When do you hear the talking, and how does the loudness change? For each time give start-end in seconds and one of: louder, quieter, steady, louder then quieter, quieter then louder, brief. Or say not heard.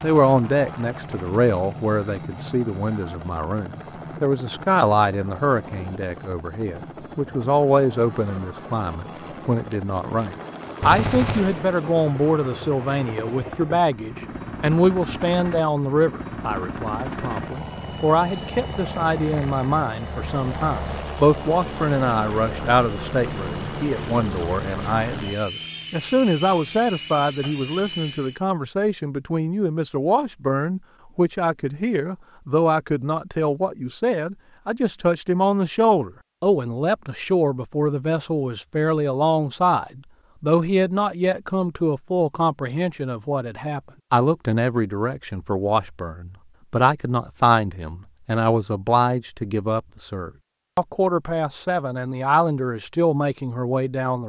0.0-54.2 steady.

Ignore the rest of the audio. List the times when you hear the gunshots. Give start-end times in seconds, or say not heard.
10.8-11.8.